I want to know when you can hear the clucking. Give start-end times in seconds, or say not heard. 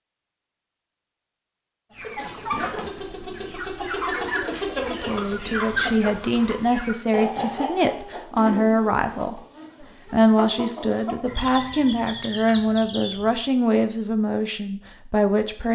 1.9-13.4.